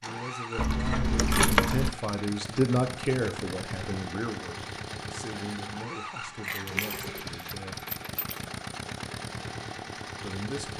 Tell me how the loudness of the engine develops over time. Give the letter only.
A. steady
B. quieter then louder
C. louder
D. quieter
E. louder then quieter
A.